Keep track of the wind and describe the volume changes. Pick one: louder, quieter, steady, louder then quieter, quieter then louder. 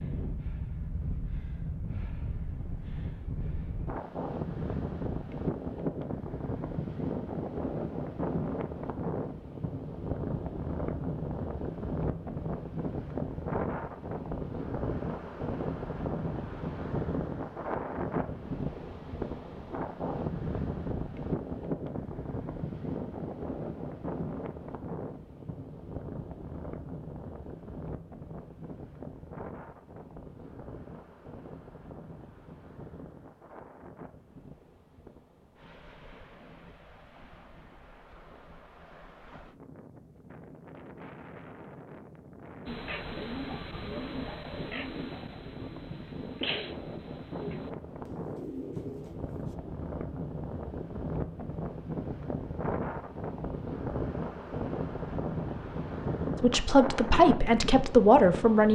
quieter then louder.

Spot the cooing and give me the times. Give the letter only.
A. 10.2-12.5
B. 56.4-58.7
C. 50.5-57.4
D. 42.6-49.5
D.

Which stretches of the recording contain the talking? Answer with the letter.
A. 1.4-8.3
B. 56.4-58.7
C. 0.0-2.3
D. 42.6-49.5
B.